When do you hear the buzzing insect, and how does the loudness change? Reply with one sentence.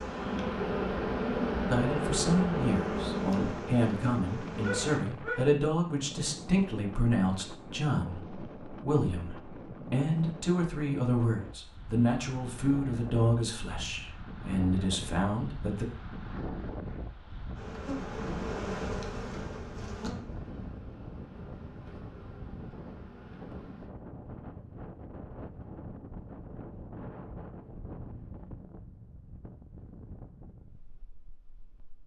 You can hear the buzzing insect from 0.0 to 5.0 s, getting quieter; and from 17.6 to 23.9 s, getting quieter.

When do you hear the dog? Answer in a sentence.
The dog can be heard from 4.6 to 5.5 s.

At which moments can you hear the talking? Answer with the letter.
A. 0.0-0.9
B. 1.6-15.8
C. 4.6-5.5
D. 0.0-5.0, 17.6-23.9
B.